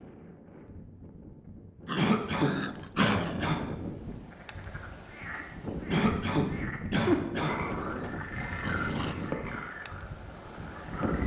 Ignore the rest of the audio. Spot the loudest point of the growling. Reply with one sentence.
The volume of the growling peaks at 3 seconds.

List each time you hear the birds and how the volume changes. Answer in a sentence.
You can't hear the birds here.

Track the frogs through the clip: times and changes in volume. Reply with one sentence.
The frogs can be heard from 4.2 to 11.2 s, getting louder then quieter.